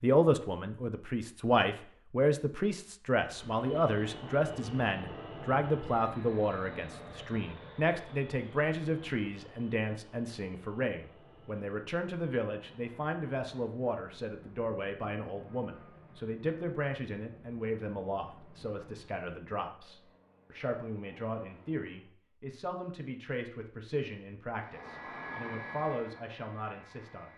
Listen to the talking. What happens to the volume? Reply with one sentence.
The volume of the talking goes down.